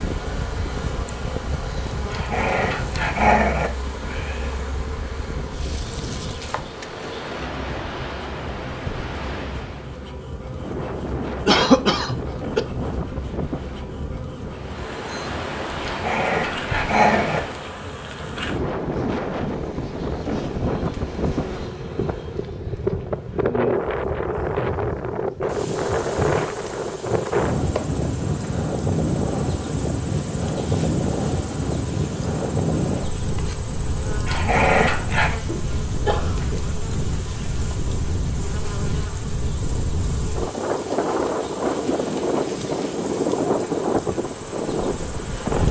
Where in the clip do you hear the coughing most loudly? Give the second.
12 s.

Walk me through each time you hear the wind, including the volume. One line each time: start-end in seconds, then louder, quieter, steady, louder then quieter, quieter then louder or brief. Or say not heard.
0.0-45.6 louder.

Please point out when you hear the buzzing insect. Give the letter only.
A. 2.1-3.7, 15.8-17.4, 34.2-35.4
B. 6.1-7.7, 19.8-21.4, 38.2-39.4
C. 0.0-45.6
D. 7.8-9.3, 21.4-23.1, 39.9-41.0
C.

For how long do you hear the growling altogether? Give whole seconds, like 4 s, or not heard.
4 s.